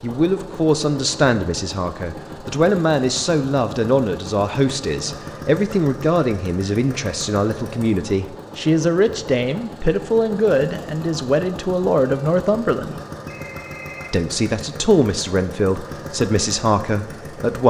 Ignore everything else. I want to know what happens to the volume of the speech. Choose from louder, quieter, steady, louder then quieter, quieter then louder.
steady.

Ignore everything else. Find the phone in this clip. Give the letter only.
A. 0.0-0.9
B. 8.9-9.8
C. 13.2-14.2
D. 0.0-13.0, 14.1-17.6
C.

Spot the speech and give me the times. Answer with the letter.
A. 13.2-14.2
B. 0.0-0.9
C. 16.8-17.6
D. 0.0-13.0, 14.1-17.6
D.